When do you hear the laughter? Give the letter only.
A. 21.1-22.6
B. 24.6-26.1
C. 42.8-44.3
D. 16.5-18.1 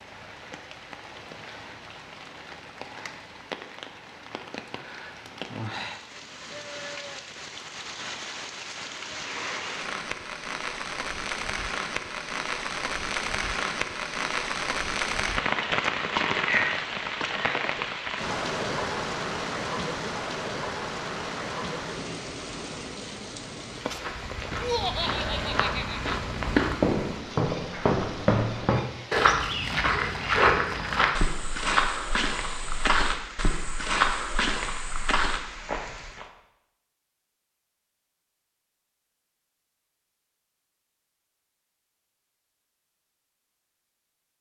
B.